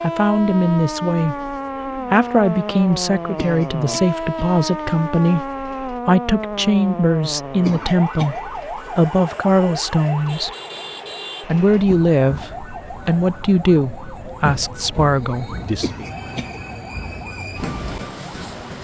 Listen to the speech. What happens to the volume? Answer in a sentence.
The volume of the speech stays about the same.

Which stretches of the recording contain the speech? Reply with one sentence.
You can hear the speech from 0.0 to 10.5 s and from 11.4 to 16.1 s.